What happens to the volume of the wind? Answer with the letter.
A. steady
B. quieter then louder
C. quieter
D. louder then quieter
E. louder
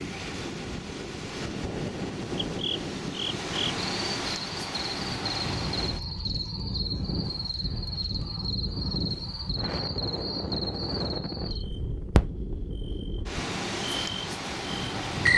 A.